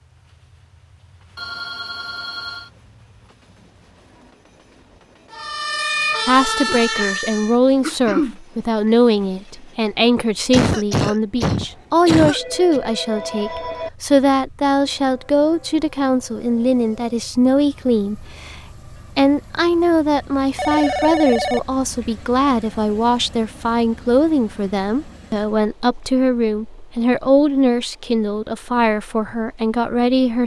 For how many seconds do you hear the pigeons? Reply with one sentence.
You can't hear the pigeons here.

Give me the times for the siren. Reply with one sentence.
The siren can be heard from 5.3 to 7.5 s.